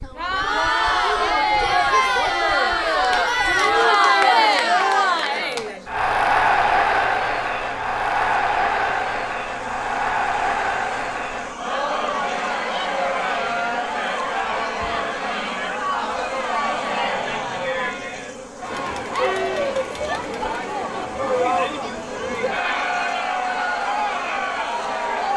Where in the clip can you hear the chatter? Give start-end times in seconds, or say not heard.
0.0-25.3.